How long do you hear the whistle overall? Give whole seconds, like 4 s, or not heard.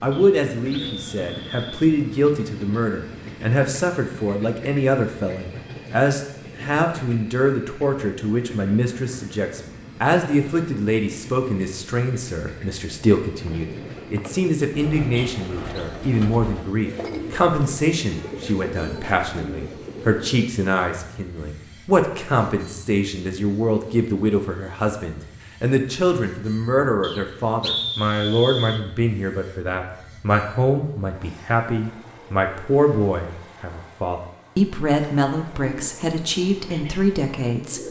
4 s.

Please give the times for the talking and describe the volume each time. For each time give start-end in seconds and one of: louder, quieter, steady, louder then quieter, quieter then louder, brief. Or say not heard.
0.0-37.8 steady.